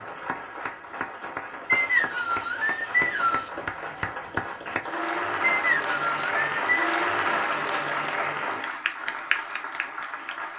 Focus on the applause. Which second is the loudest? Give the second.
7 s.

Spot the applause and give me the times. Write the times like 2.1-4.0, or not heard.
0.0-10.5.